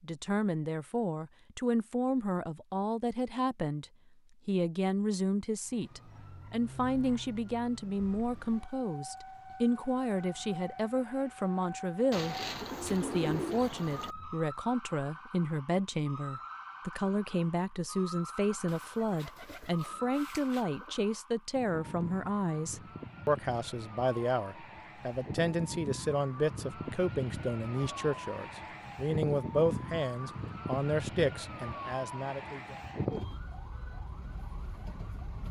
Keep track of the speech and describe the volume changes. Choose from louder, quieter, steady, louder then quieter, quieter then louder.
steady.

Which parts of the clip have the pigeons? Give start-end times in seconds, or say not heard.
12.1-14.2, 18.6-20.9.